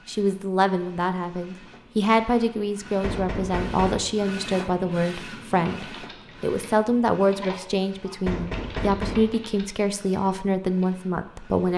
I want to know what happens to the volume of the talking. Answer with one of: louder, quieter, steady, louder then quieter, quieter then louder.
steady.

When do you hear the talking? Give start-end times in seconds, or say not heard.
0.1-11.7.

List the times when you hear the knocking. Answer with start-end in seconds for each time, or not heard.
3.0-4.1, 8.2-9.3.